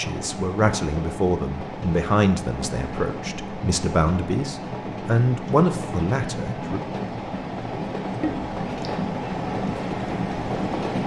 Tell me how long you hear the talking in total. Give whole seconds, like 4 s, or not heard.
7 s.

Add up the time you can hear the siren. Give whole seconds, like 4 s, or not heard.
not heard.